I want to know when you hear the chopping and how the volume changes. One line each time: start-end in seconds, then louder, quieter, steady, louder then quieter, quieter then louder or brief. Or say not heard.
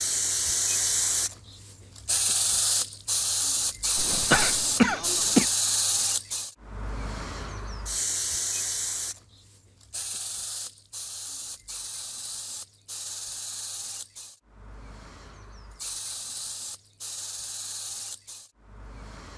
not heard.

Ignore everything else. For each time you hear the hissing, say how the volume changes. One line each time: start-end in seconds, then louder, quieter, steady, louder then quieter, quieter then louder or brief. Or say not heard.
0.0-19.3 quieter.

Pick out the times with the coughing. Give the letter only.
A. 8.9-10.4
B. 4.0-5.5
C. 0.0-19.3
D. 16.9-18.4
B.